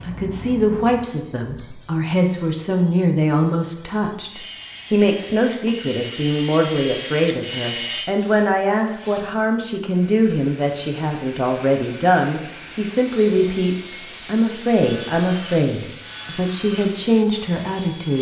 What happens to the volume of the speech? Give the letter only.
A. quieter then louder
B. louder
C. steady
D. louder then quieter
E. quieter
C.